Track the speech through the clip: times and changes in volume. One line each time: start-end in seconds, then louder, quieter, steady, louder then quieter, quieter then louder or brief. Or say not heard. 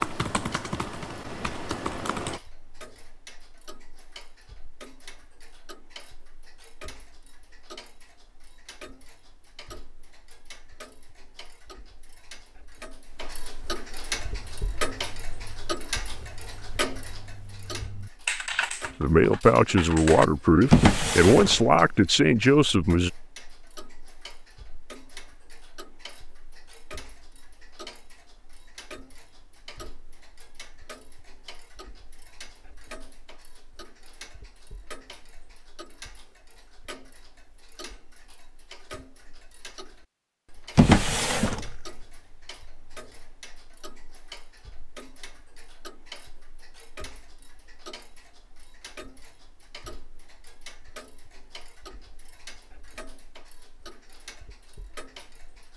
19.0-23.1 steady.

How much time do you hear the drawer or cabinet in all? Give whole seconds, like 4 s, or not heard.
2 s.